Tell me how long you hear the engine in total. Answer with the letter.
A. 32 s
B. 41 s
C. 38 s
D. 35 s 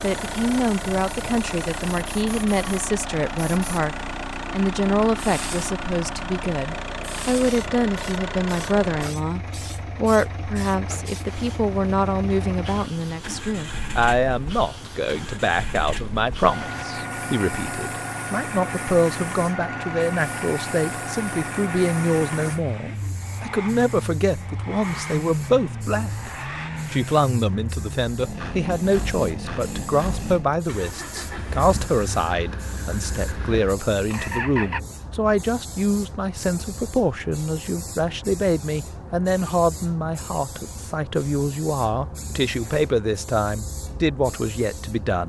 D.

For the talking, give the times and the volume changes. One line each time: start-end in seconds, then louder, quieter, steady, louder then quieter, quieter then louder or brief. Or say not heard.
0.0-45.2 steady.